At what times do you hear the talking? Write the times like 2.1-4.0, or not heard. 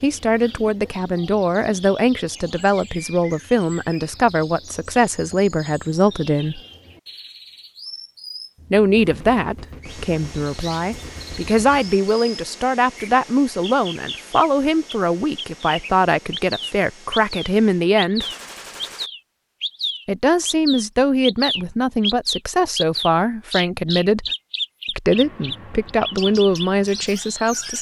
0.0-6.6, 8.7-18.2, 20.1-24.3, 24.9-27.7.